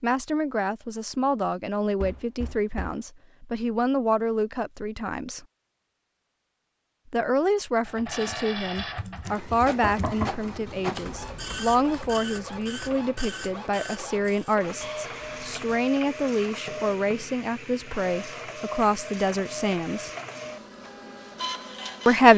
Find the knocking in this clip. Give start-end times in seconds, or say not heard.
2.0-3.0, 9.8-11.5, 16.6-17.3.